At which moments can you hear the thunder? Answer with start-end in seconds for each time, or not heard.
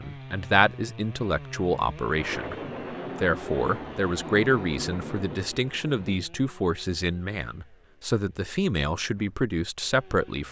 2.1-6.2.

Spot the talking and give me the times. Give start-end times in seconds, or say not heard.
0.0-2.5, 3.1-10.4.